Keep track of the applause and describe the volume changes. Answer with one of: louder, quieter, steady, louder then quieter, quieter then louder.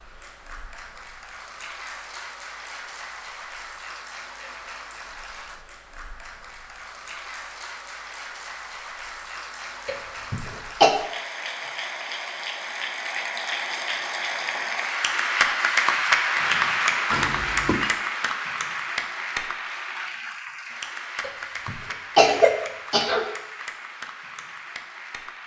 louder then quieter.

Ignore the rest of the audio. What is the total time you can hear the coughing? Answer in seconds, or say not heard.
3 s.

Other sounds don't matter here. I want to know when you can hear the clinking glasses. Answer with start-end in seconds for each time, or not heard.
17.1-17.9.